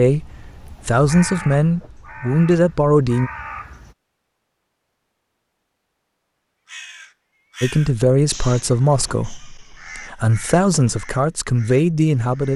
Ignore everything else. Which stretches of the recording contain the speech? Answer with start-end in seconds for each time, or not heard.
0.0-3.3, 7.6-12.5.